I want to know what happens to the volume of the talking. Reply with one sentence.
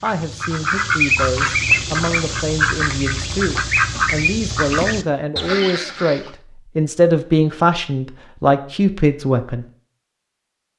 The volume of the talking goes up.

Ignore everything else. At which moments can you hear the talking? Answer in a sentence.
You can hear the talking from 0.0 to 9.7 s.